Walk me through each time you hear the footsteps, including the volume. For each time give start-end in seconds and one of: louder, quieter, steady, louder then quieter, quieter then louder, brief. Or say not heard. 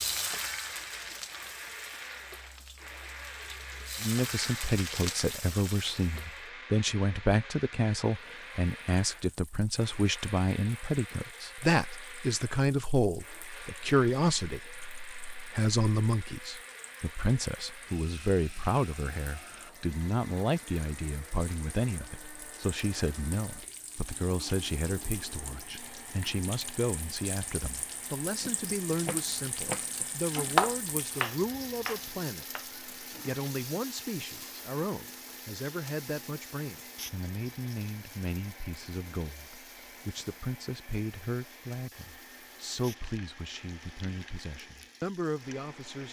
not heard.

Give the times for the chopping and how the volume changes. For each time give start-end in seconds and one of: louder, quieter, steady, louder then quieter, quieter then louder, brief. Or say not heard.
28.2-32.7 louder then quieter.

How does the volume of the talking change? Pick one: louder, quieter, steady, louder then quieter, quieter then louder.
quieter.